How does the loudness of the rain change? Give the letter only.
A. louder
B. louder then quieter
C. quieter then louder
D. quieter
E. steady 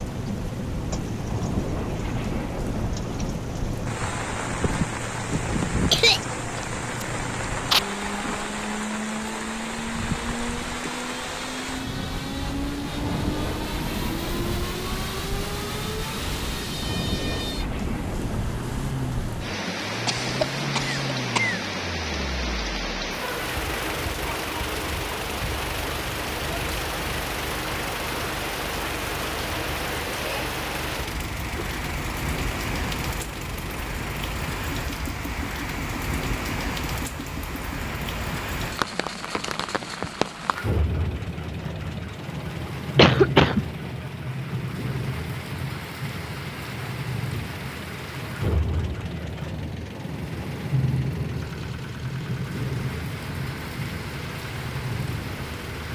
E.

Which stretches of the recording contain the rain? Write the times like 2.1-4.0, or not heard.
0.0-55.9.